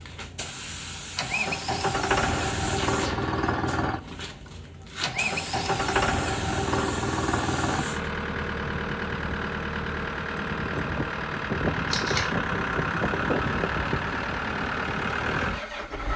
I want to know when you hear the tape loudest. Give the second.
12 s.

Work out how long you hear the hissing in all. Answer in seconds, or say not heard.
8 s.